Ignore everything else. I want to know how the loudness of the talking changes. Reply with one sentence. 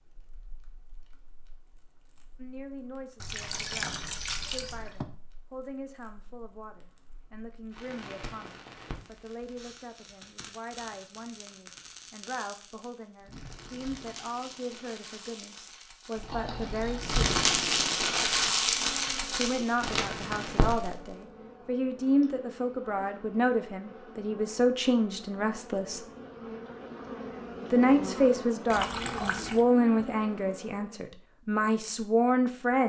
The volume of the talking goes up.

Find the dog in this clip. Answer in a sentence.
You can't hear the dog here.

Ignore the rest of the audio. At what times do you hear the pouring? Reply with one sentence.
You can hear the pouring from 3.2 to 5.0 s, from 16.1 to 17.1 s and from 28.7 to 29.6 s.